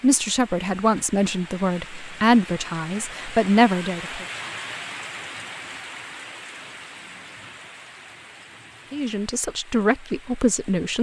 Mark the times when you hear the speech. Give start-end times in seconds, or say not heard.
0.0-4.2, 8.9-10.9.